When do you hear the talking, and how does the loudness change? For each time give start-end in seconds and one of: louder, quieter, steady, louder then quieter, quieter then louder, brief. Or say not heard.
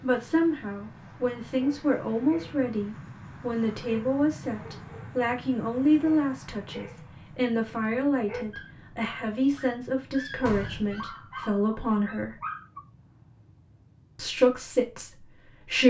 0.0-12.4 steady
14.2-15.8 brief.